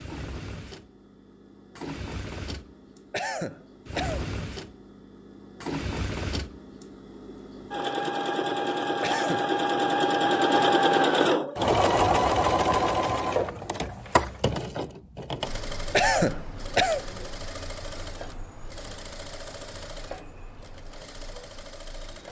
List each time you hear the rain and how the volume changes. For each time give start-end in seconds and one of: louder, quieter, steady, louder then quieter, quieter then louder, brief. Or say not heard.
not heard.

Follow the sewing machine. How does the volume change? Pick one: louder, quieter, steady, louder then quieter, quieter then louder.
louder then quieter.